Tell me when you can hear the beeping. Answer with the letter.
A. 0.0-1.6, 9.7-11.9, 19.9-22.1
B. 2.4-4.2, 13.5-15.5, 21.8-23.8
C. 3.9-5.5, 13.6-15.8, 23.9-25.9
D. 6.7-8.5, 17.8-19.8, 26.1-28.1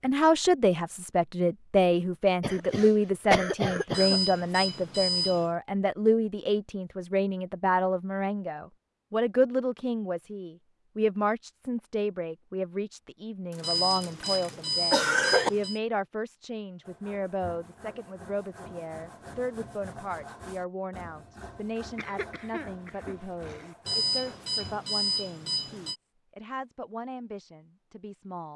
C.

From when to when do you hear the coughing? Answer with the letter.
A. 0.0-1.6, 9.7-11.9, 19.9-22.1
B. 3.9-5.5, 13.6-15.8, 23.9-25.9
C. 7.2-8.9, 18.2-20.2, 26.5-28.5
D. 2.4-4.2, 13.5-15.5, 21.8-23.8
D.